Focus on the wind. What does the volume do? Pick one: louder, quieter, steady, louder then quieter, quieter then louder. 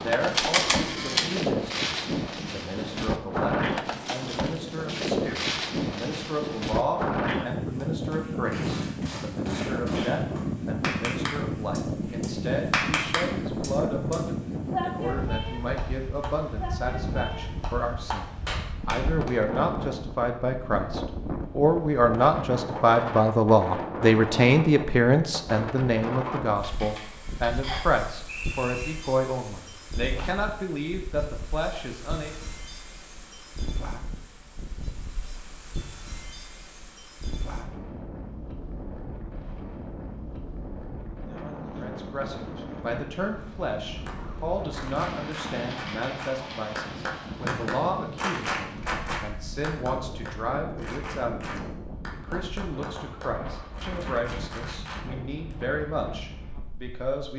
quieter.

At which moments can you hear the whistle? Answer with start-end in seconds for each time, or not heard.
27.6-28.9.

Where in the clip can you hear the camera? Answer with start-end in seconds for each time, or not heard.
0.3-1.3, 26.6-27.6, 45.6-46.6.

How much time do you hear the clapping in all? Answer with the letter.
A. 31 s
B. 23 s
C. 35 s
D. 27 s
B.